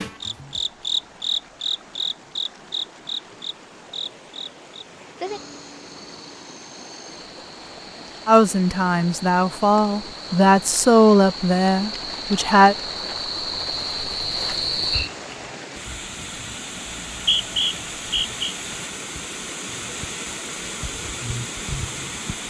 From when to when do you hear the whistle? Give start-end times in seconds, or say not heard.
16.9-18.4.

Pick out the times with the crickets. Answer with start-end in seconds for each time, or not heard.
0.0-15.5.